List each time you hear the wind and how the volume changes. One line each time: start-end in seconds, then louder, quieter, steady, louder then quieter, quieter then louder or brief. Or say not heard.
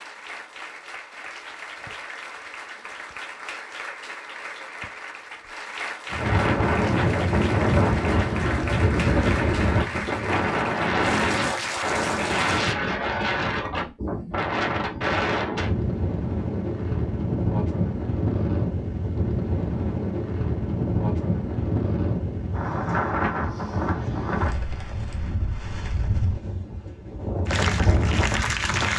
6.1-28.9 quieter.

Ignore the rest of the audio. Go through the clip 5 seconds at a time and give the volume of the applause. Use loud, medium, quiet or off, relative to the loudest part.
medium, medium, loud, off, off, loud.